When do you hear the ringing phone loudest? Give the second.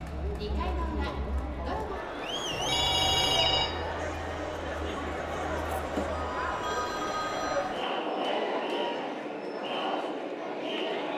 3 s.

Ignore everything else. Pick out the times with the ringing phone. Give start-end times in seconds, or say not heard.
2.5-3.7, 6.6-7.7.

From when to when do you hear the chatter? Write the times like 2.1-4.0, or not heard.
0.0-11.1.